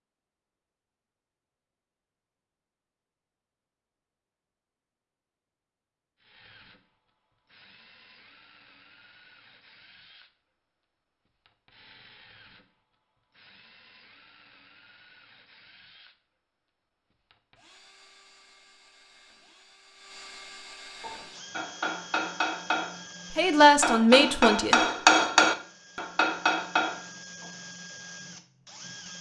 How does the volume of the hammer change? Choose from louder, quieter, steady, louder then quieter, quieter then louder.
louder then quieter.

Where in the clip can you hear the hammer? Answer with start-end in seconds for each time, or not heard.
21.0-27.5.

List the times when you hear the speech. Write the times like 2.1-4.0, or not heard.
23.3-24.8.